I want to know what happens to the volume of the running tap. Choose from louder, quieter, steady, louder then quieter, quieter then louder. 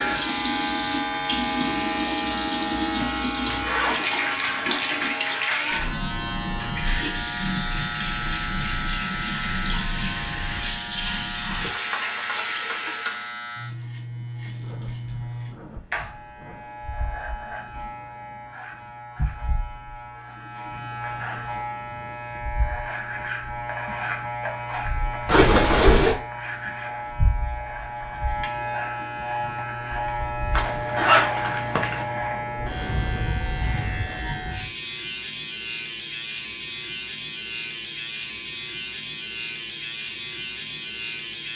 steady.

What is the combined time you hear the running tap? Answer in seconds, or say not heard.
13 s.